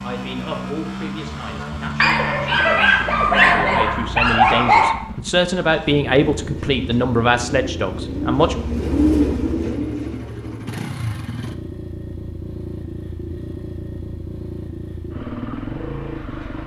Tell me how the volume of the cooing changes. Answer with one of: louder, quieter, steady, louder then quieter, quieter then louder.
louder then quieter.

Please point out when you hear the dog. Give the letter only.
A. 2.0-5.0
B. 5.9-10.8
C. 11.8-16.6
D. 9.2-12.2
A.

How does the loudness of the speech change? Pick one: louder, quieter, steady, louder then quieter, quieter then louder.
louder.